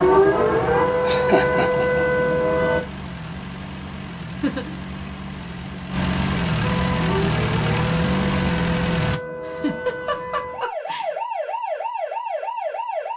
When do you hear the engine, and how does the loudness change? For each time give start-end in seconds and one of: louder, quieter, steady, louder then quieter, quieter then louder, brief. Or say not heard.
0.0-9.2 louder.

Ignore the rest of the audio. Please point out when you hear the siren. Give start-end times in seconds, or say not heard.
0.0-2.9, 6.6-13.1.